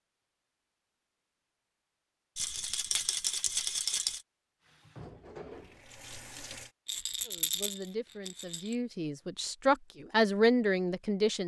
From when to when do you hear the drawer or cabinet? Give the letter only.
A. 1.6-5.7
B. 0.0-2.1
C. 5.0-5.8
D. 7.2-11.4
C.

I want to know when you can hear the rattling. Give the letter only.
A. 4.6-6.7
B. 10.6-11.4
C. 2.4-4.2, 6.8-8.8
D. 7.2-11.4
C.